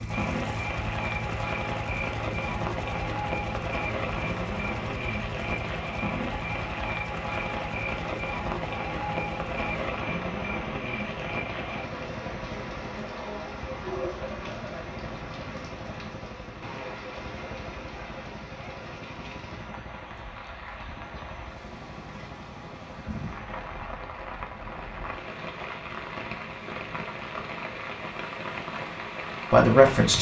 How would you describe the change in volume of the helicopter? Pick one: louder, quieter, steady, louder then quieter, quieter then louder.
quieter.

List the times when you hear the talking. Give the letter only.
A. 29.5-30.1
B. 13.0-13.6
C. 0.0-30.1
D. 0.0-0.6
A.